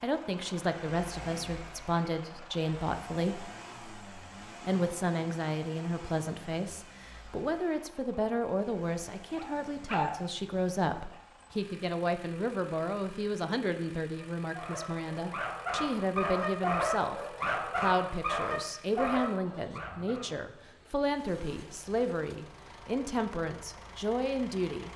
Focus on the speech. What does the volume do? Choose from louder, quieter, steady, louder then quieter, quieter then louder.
steady.